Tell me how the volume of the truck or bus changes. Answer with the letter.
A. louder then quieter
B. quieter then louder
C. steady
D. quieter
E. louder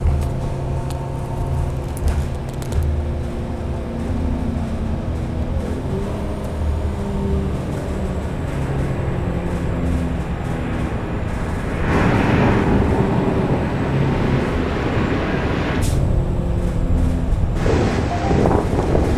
C.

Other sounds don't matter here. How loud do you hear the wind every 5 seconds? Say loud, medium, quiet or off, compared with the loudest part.
off, medium, loud, loud.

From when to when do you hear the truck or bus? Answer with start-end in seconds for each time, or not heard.
0.0-19.1.